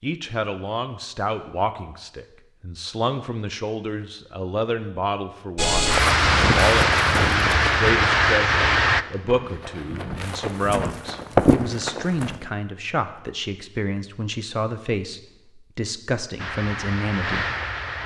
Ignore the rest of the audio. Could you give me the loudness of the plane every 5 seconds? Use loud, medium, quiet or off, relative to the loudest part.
off, loud, off, medium.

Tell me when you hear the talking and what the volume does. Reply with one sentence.
The talking can be heard from 0.0 to 17.5 s, at a steady volume.